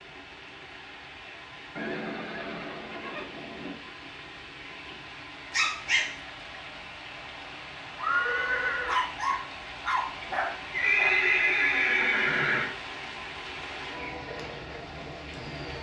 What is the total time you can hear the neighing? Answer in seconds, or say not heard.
5 s.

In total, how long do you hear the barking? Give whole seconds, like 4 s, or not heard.
3 s.